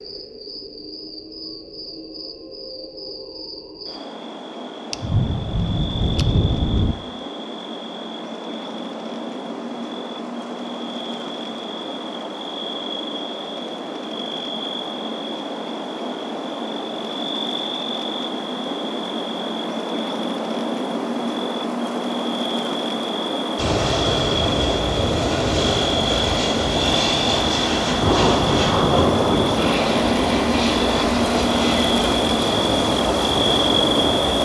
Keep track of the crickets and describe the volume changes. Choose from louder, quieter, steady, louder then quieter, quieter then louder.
louder.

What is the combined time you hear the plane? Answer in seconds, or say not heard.
11 s.